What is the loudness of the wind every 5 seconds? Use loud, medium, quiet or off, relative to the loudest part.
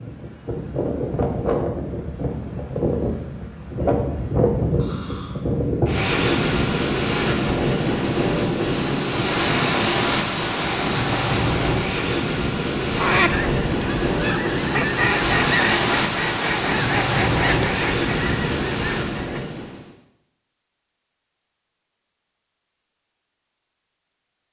loud, loud, loud, loud, off.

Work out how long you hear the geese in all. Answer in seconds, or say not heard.
7 s.